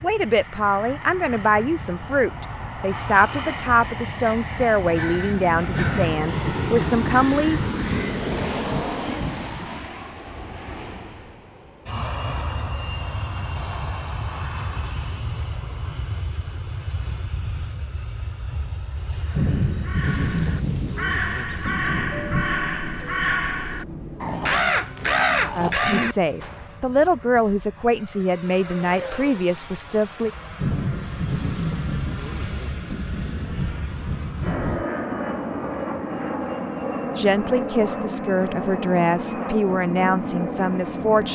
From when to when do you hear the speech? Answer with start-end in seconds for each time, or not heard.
0.0-7.6, 25.6-30.3, 37.1-41.3.